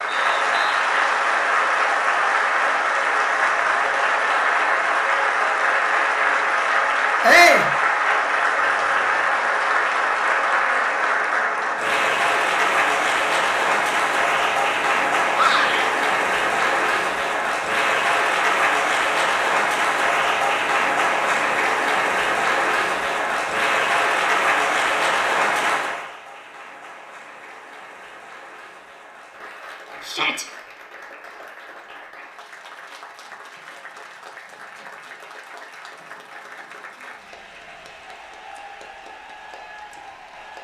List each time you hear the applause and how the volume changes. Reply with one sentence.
You can hear the applause from 0.0 to 40.5 s, getting quieter.